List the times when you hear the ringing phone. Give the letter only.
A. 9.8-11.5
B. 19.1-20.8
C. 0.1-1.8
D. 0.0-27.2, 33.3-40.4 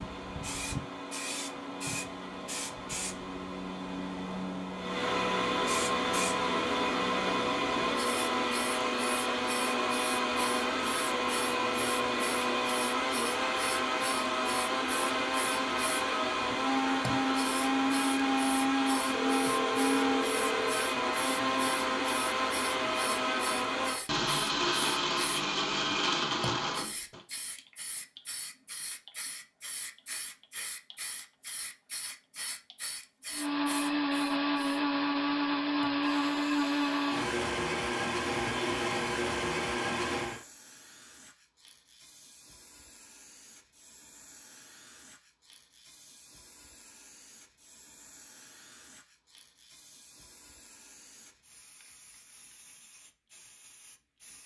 B.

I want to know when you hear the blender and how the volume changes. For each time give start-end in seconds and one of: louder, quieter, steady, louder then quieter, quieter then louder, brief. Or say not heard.
0.0-27.2 louder
33.3-40.4 steady.